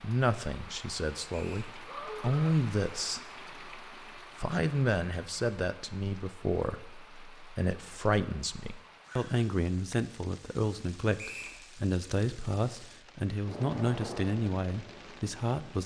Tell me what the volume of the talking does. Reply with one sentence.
The volume of the talking stays about the same.